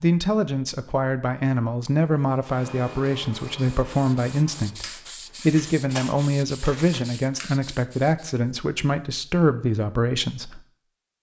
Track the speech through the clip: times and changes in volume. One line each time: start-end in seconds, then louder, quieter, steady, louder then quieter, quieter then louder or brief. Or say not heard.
0.0-10.7 steady.